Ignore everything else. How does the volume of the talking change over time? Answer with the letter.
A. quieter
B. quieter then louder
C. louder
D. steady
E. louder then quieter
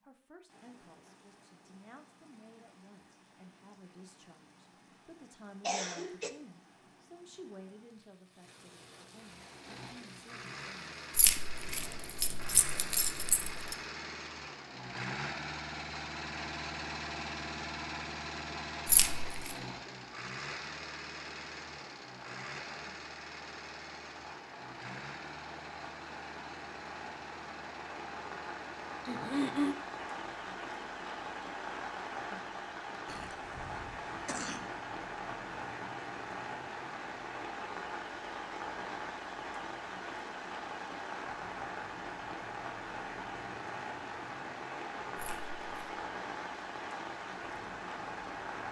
E.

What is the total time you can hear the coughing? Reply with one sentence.
The coughing can be heard for 3 seconds in total.